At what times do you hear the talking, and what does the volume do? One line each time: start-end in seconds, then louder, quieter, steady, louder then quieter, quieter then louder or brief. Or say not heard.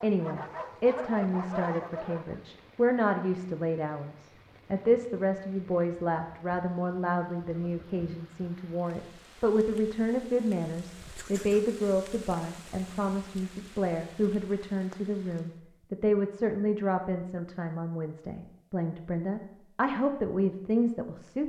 0.0-21.4 steady.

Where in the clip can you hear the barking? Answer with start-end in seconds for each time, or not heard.
0.0-2.4.